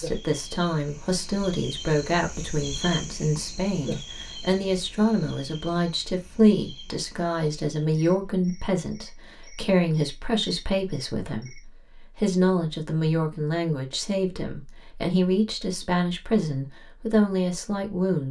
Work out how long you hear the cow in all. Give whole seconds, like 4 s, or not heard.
not heard.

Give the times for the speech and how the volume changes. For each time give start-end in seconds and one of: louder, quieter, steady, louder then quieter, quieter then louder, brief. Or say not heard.
0.0-18.2 steady.